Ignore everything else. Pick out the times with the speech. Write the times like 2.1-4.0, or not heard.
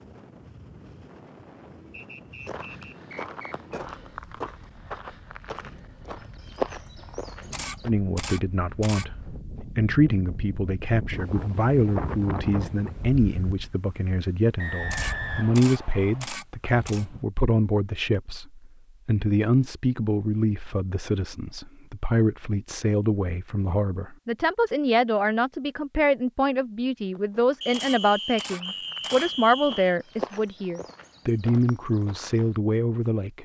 7.8-33.4.